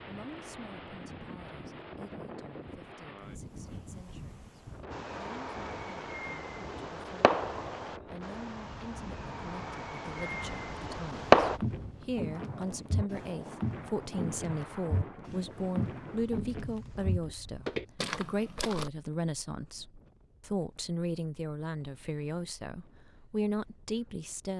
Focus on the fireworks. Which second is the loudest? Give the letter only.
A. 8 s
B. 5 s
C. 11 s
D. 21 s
C.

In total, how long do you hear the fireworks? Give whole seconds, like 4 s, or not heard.
7 s.